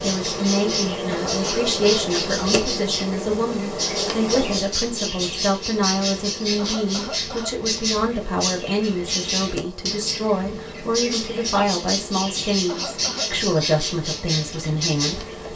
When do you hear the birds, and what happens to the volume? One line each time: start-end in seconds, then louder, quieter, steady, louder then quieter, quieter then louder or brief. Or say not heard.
0.0-15.5 steady.